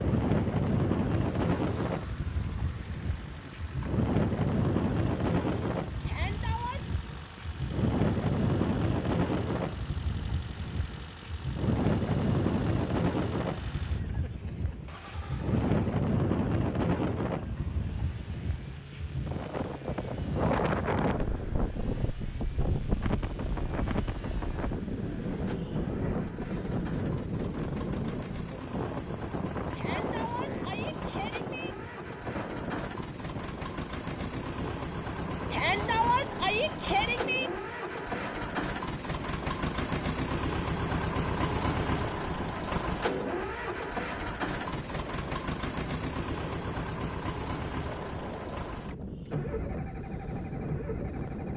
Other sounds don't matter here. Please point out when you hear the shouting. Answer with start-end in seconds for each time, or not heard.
6.0-6.8, 29.8-31.8, 35.5-37.5.